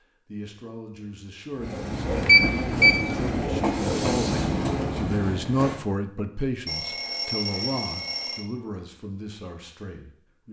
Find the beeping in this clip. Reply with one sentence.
You can hear the beeping from 2.2 to 3.0 s and from 6.7 to 8.4 s.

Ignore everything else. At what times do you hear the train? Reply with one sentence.
The train can be heard from 1.5 to 5.8 s.